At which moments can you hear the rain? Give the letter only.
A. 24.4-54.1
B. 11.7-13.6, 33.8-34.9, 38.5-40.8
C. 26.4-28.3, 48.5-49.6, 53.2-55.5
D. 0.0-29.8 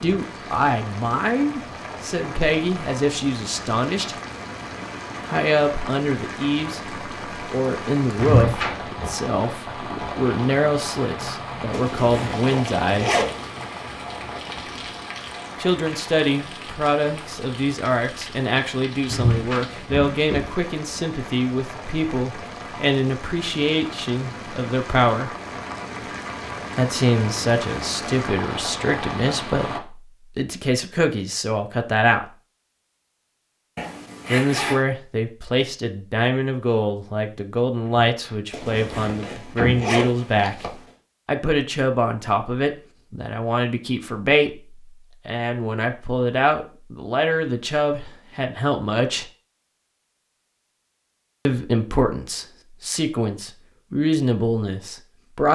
D.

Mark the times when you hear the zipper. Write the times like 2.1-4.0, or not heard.
11.7-13.6, 33.8-34.9, 38.5-40.8.